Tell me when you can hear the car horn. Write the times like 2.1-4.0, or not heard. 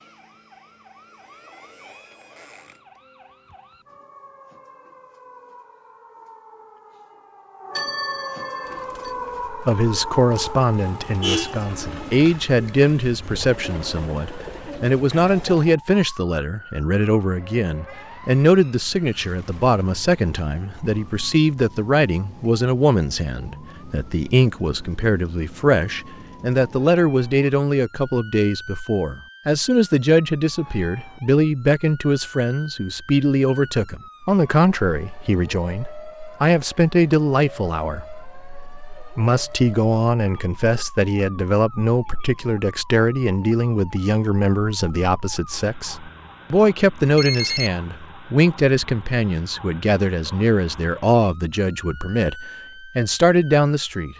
10.8-11.6.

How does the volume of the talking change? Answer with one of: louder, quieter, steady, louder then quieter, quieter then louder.
steady.